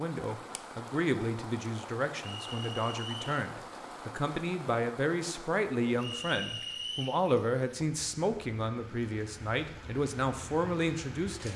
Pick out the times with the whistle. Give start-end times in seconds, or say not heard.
2.2-3.3, 6.0-7.2.